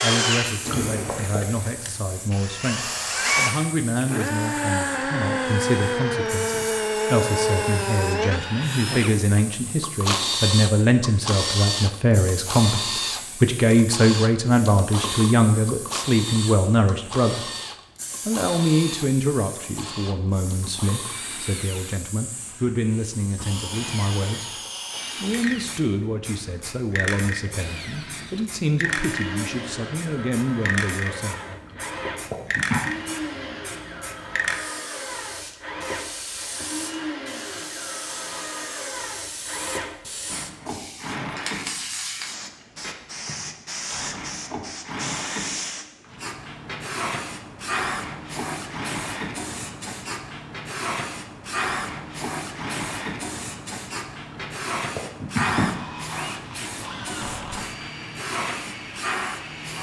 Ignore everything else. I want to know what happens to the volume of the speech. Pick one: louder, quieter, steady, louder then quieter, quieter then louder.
louder then quieter.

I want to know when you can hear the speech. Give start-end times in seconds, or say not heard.
0.0-17.5, 18.2-24.6, 25.2-31.6.